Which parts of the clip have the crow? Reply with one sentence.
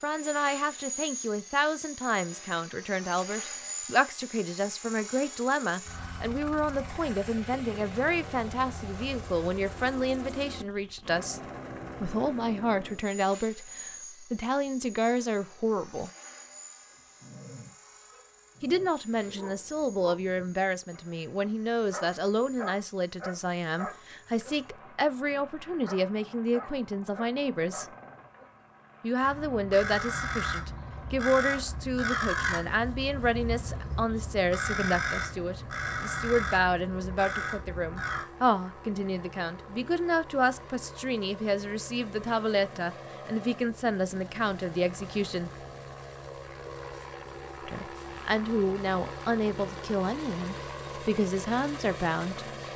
The crow can be heard from 29.2 to 38.3 s.